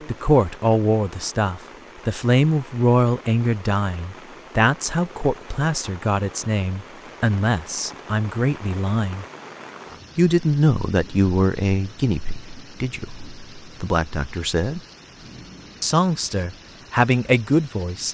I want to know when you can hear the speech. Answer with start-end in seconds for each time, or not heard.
0.1-9.2, 10.2-14.8, 15.8-18.0.